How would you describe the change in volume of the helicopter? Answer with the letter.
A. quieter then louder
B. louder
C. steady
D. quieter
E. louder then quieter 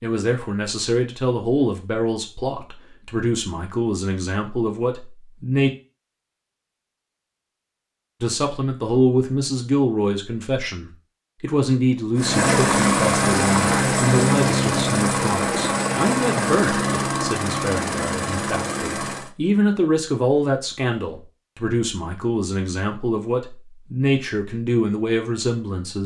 D.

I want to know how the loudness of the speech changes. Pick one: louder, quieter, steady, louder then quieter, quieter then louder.
steady.